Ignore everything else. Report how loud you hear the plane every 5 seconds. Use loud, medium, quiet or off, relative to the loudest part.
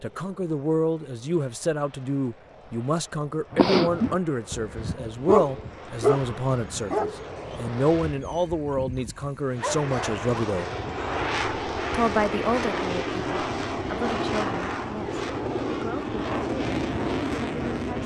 quiet, medium, loud, loud.